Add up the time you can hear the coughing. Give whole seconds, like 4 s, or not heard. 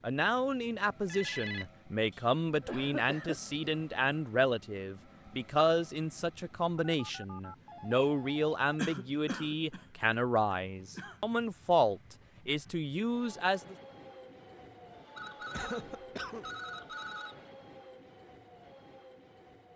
5 s.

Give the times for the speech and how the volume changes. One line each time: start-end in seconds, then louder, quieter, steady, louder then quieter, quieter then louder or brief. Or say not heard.
0.0-13.8 steady.